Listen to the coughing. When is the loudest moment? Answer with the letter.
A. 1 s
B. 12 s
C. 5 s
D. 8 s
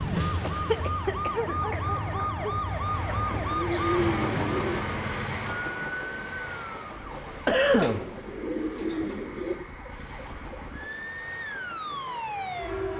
D.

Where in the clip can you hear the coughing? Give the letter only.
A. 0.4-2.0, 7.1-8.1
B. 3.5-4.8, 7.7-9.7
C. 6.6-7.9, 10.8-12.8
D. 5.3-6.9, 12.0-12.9
A.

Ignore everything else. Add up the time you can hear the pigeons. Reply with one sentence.
The pigeons can be heard for 3 seconds in total.